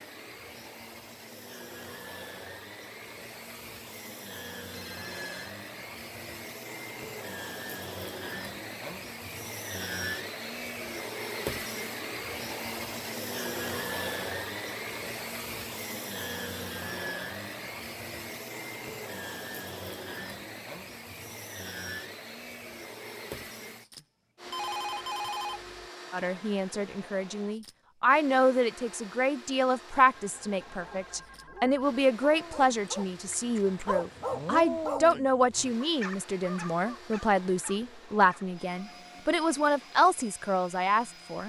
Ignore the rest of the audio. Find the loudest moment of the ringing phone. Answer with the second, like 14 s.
25 s.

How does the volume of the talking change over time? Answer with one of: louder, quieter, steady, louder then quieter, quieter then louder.
steady.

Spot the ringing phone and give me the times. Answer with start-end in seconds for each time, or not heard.
4.7-5.5, 23.9-25.9, 30.1-31.9.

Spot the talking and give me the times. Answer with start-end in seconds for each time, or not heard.
26.1-41.4.